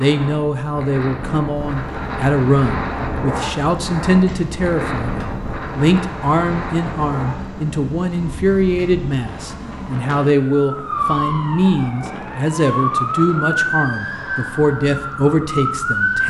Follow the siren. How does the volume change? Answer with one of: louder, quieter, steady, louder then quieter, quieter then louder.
louder.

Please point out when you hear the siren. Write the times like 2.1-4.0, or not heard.
1.5-16.2.